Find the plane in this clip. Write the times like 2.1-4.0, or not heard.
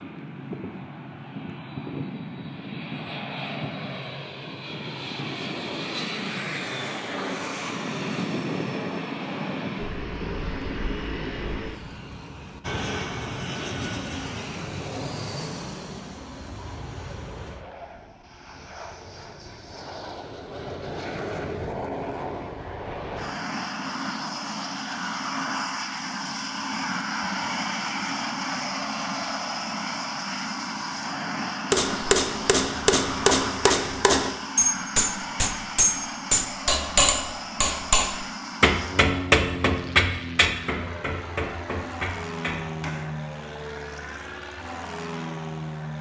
0.0-45.9.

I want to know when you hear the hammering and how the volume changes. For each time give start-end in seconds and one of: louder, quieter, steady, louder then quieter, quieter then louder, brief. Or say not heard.
31.7-43.0 quieter.